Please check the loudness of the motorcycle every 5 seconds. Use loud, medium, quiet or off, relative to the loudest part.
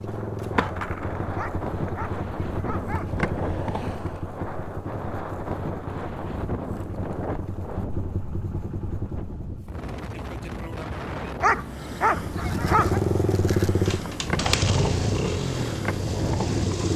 medium, quiet, loud, loud.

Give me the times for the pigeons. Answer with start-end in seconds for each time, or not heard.
not heard.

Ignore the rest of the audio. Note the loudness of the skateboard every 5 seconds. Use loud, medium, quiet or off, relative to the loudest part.
loud, off, loud, loud.